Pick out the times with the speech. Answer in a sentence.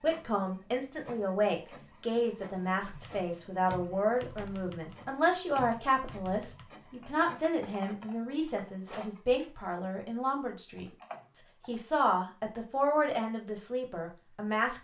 You can hear the speech from 0.0 to 14.8 s.